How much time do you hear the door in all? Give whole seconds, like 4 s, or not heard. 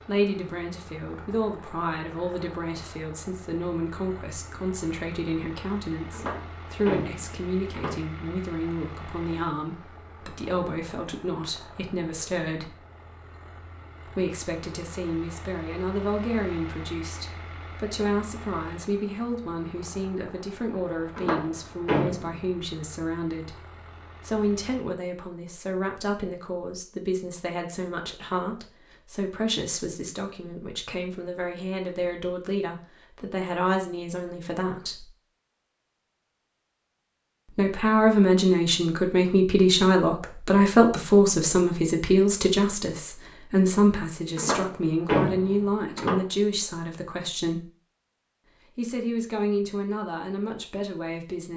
5 s.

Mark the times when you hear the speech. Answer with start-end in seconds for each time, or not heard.
0.1-12.8, 14.1-23.6, 24.2-35.0, 37.5-47.6, 48.8-51.5.